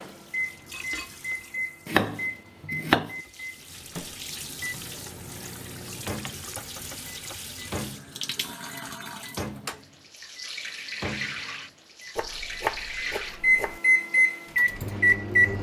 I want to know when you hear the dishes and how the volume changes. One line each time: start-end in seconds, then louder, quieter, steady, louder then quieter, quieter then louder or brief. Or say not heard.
not heard.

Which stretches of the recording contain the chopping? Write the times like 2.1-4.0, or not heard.
1.9-3.1, 12.2-13.8.